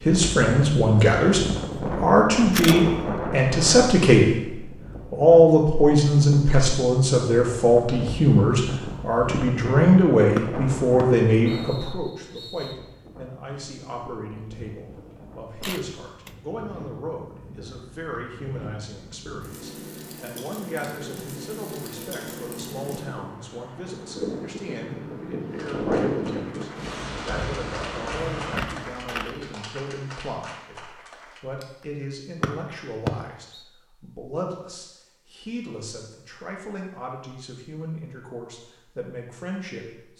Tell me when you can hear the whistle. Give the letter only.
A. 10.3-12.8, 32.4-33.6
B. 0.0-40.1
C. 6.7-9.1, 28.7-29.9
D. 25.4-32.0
A.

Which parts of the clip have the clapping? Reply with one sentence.
The clapping can be heard from 25.4 to 32.0 s.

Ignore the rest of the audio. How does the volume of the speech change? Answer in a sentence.
The volume of the speech goes down.